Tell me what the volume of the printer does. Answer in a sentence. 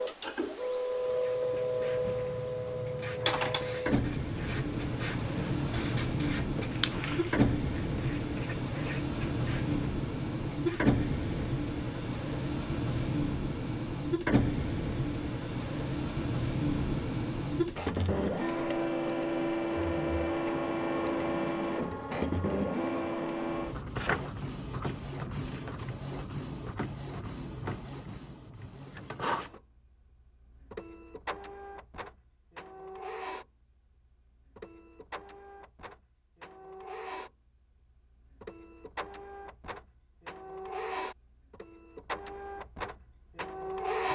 The loudness of the printer goes down.